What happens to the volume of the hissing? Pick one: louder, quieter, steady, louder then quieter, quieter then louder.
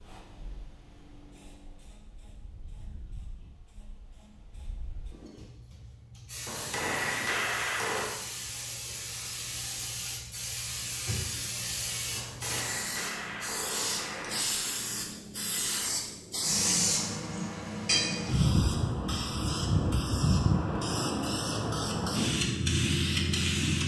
louder.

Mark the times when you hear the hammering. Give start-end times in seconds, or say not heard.
6.5-8.1, 12.2-14.5.